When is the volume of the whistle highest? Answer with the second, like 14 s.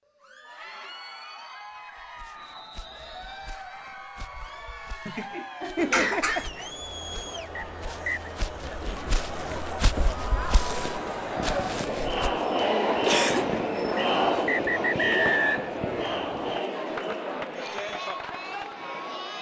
15 s.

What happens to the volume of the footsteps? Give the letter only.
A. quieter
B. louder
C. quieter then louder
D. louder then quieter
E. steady
B.